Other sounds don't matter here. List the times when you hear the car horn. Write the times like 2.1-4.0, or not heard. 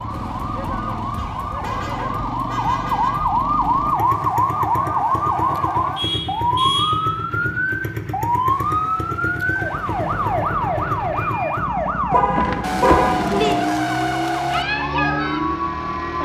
1.1-3.1, 5.5-7.0, 12.1-13.6.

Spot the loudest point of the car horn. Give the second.
13 s.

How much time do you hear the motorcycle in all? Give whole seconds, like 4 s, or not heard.
16 s.